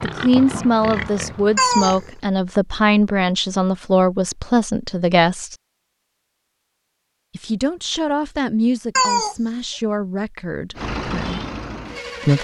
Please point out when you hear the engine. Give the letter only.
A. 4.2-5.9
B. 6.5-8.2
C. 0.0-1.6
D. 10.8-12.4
D.